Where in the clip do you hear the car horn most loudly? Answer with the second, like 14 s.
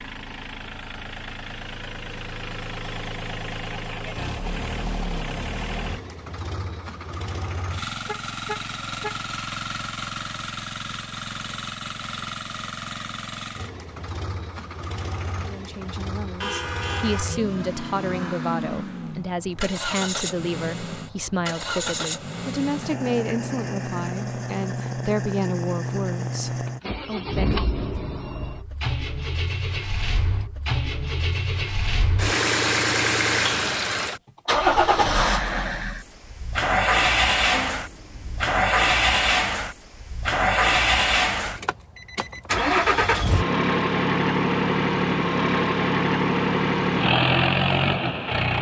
17 s.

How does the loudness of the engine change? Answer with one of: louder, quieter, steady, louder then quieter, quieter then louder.
louder.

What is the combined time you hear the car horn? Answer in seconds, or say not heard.
3 s.